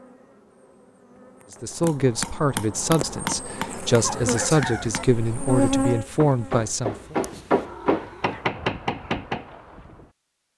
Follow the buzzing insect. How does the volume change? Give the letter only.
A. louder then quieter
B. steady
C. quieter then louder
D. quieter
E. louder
E.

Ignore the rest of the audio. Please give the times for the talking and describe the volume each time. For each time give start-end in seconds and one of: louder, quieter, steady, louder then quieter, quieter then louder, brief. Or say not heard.
1.6-7.2 quieter then louder.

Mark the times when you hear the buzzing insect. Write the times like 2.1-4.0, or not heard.
0.0-6.6.